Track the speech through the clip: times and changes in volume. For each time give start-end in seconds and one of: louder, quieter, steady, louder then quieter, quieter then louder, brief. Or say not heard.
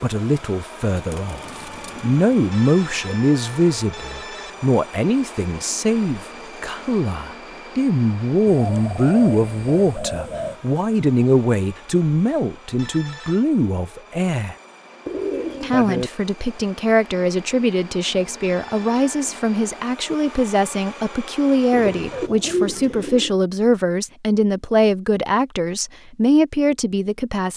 0.0-14.6 steady
15.6-27.5 steady.